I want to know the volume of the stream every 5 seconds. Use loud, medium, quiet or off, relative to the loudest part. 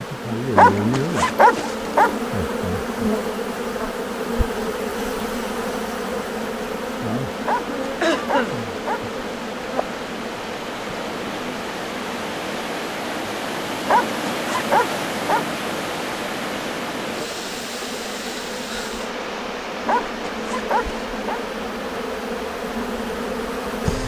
medium, medium, loud, loud, medium.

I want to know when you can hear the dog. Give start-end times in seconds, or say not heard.
0.6-2.2, 7.5-9.1, 13.8-15.5, 19.9-21.4.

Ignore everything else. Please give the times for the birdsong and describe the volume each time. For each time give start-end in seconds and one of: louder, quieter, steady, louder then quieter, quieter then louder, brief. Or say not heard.
not heard.